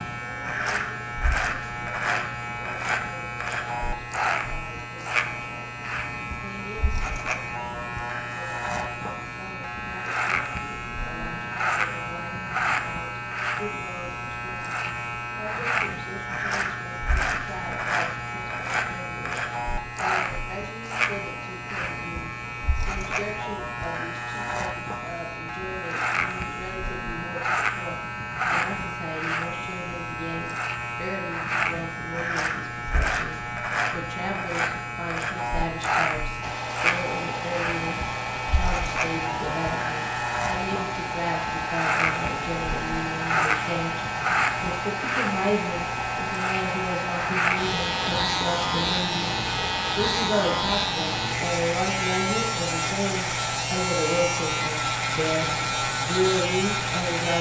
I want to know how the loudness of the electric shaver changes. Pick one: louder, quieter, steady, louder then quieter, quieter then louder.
steady.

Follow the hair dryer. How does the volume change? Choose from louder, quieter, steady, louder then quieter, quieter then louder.
steady.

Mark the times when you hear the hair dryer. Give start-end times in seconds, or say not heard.
36.4-57.3.